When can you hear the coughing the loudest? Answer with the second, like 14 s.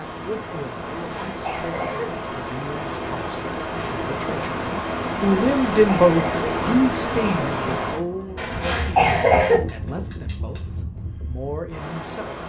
9 s.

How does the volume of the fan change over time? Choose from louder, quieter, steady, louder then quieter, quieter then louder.
louder then quieter.